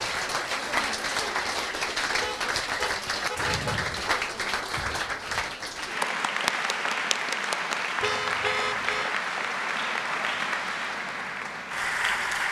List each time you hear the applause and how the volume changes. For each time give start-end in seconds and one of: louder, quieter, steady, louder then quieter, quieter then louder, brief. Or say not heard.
0.0-12.4 steady.